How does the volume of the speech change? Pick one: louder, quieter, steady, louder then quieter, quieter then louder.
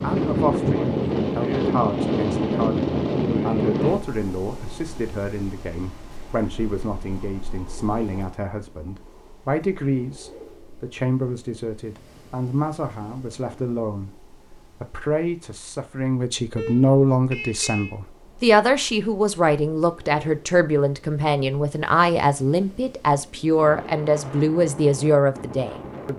louder.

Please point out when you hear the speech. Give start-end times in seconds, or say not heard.
0.0-26.1.